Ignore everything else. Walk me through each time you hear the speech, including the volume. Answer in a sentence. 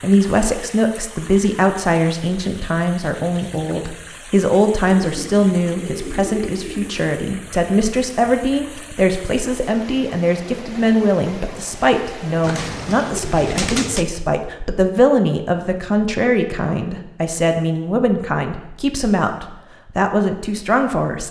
The speech can be heard from 0.0 to 21.2 s, at a steady volume.